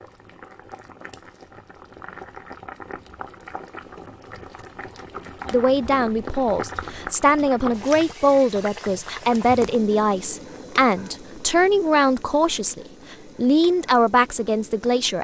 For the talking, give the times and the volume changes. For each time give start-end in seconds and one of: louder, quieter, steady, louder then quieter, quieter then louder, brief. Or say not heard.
5.5-15.2 steady.